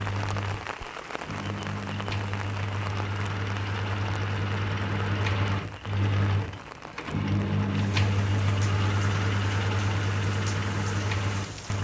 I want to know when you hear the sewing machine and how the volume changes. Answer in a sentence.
The sewing machine can be heard from 0.0 to 11.8 s, getting louder.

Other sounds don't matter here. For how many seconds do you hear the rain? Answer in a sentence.
The rain can be heard for 12 seconds in total.